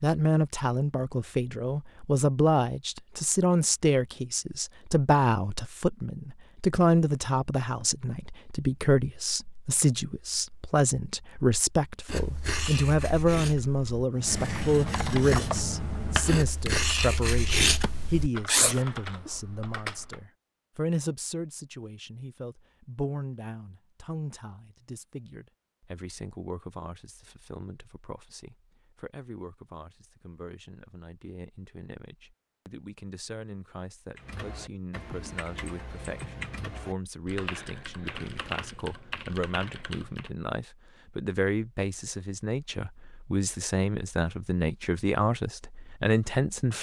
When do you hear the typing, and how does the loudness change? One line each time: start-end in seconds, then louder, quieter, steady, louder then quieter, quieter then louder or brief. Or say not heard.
14.2-20.2 quieter
34.1-40.3 steady.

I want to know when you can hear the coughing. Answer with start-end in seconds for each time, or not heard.
not heard.